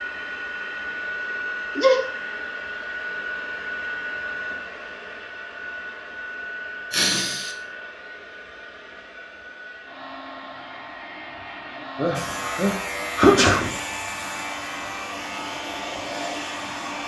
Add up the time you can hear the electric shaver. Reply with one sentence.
The electric shaver can be heard for 5 seconds in total.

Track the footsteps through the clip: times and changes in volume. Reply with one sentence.
You can't hear the footsteps here.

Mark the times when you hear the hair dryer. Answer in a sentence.
You can hear the hair dryer from 0.0 to 17.0 s.